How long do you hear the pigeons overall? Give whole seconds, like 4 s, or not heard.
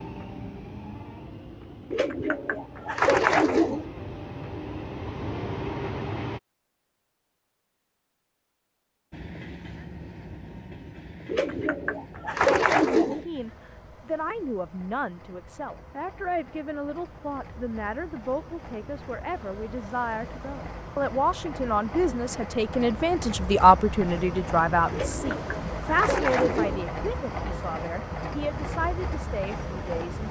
6 s.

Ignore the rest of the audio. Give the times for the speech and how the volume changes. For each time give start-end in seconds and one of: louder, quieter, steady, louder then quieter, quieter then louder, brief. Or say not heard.
12.9-30.2 louder then quieter.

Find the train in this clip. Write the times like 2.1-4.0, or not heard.
0.0-6.4, 9.1-30.2.